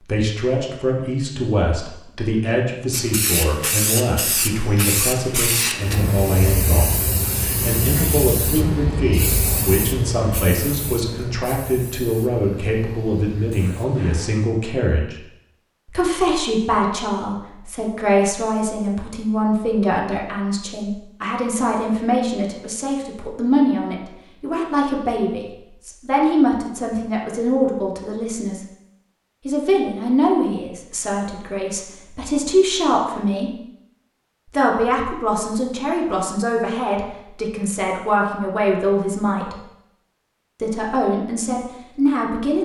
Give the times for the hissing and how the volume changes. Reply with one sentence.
You can hear the hissing from 2.9 to 14.4 s, getting quieter.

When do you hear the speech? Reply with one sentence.
You can hear the speech from 0.1 to 15.2 s, from 15.8 to 28.6 s, from 29.4 to 33.5 s, from 34.5 to 39.5 s and from 40.6 to 42.6 s.